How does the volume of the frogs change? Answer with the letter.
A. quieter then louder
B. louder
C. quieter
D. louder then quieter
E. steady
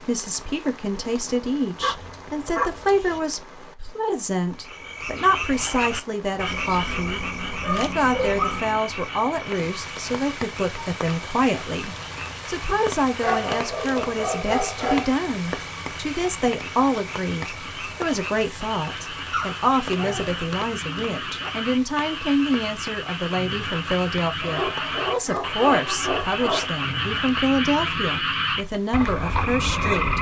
A.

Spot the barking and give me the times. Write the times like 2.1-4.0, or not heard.
1.8-3.2, 6.5-8.6, 12.7-15.2, 19.3-21.6, 24.4-26.7.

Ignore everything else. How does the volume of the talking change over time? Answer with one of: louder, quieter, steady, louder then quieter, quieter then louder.
steady.